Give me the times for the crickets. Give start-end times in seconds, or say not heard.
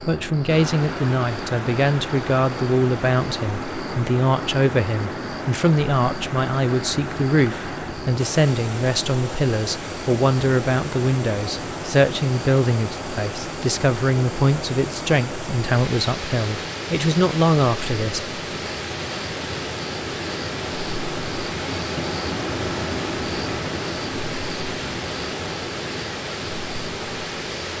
0.0-27.7.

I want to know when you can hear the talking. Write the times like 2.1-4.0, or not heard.
0.1-18.2.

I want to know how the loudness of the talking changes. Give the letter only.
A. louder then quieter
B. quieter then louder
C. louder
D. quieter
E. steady
E.